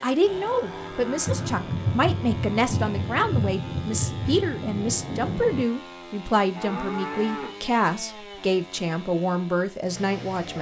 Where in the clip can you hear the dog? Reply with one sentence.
You can't hear the dog here.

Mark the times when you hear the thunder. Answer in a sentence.
You can hear the thunder from 1.2 to 5.7 s.